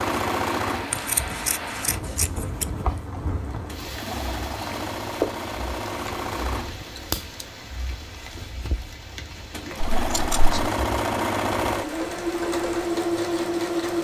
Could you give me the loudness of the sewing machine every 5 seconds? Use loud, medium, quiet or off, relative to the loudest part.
medium, medium, loud.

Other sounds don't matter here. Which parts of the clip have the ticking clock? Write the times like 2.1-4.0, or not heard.
not heard.